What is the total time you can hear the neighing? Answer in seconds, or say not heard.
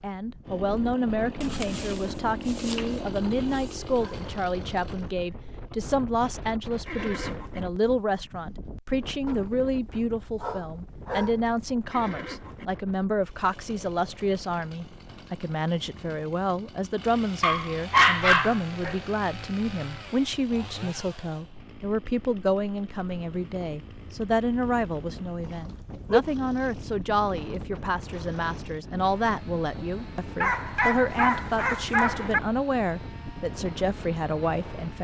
2 s.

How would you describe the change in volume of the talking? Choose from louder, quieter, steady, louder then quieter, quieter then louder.
steady.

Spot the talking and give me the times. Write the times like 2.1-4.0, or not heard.
0.0-35.0.